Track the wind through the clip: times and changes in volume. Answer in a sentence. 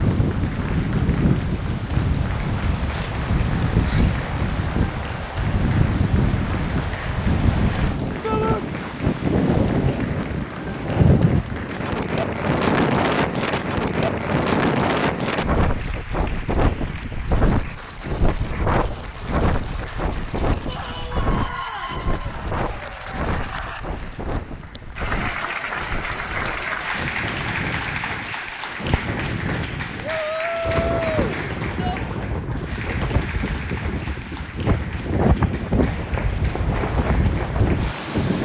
The wind can be heard from 0.0 to 38.4 s, getting quieter then louder.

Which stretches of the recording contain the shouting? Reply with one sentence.
The shouting can be heard from 8.2 to 8.7 s, from 20.6 to 22.0 s and from 30.0 to 32.0 s.